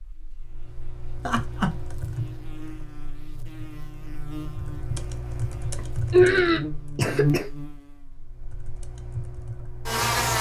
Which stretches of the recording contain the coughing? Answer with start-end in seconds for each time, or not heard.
1.2-1.8, 5.8-7.5.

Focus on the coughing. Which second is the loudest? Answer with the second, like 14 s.
6 s.